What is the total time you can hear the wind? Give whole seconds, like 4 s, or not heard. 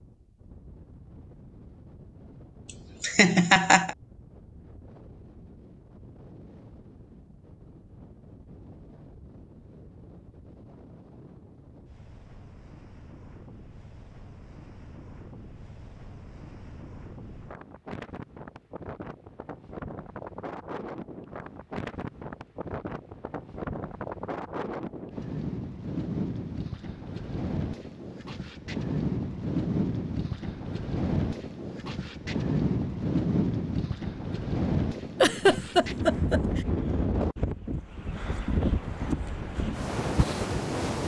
41 s.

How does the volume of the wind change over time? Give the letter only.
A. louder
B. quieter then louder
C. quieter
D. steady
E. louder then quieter
A.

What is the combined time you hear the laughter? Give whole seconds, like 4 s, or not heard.
2 s.